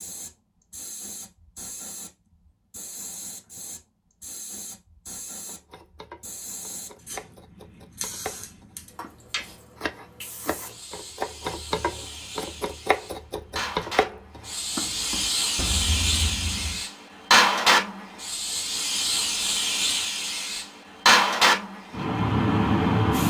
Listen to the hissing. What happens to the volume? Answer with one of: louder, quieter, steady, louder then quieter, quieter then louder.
louder.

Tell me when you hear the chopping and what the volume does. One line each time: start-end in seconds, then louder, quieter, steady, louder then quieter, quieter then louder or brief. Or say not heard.
5.5-16.8 louder then quieter.